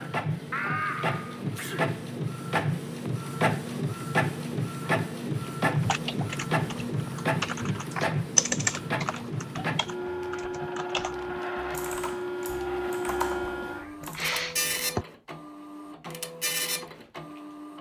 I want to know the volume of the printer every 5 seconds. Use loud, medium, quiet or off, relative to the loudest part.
loud, loud, loud, medium.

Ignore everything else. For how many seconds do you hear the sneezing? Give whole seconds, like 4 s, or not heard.
3 s.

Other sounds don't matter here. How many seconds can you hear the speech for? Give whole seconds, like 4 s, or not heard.
not heard.